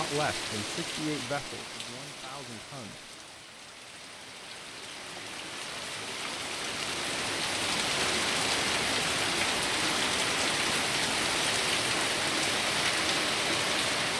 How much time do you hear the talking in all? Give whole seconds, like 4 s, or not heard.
3 s.